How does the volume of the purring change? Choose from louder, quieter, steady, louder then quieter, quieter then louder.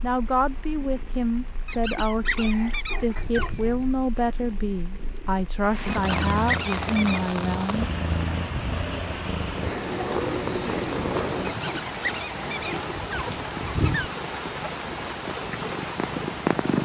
louder then quieter.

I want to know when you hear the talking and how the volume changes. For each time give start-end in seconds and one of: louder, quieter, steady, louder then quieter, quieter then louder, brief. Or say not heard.
0.0-7.8 steady.